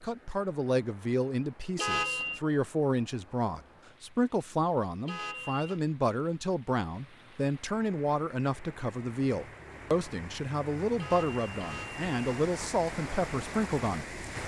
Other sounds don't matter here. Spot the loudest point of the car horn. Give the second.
2 s.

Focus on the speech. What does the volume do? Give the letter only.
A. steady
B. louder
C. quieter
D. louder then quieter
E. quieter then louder
A.